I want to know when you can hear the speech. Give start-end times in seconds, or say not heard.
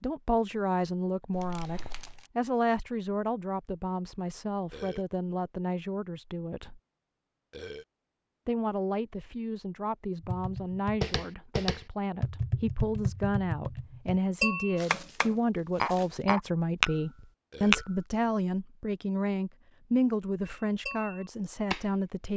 0.0-6.8, 8.4-22.3.